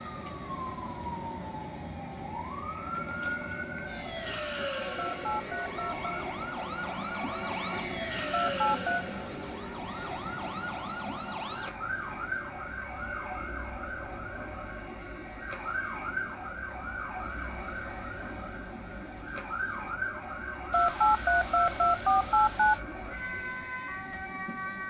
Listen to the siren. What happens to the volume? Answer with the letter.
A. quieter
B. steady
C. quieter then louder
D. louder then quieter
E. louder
B.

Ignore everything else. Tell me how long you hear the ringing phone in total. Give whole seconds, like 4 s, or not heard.
4 s.